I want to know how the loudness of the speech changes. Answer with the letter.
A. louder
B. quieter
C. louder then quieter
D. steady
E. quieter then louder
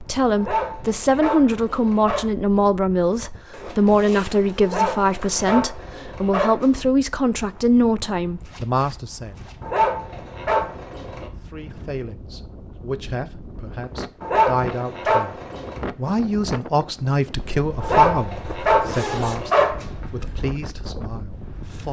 B.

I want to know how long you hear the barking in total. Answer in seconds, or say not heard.
9 s.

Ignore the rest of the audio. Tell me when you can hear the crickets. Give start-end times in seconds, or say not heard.
not heard.